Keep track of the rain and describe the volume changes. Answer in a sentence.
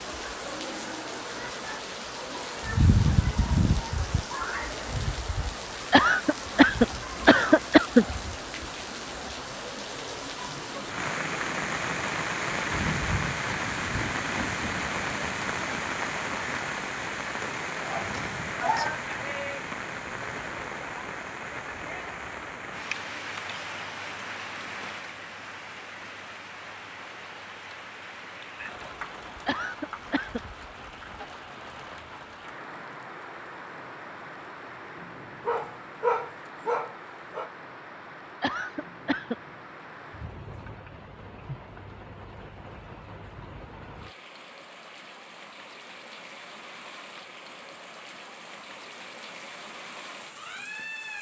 The volume of the rain goes down.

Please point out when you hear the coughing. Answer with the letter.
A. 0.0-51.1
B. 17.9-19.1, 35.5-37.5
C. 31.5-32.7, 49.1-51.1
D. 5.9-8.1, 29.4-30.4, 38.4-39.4
D.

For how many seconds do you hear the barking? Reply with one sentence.
The barking can be heard for 3 seconds in total.